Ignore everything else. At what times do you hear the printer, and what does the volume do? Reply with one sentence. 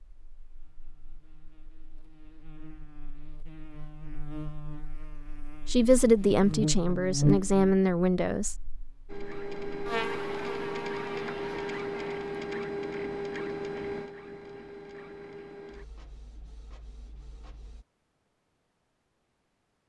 You can hear the printer from 9.1 to 17.9 s, getting quieter.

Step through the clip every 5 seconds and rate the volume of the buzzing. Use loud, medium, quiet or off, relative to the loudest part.
quiet, loud, medium, off.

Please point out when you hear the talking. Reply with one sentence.
The talking can be heard from 5.7 to 8.6 s.